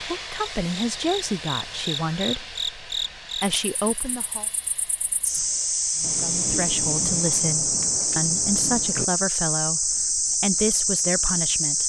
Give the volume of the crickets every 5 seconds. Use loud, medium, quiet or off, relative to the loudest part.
medium, loud, loud.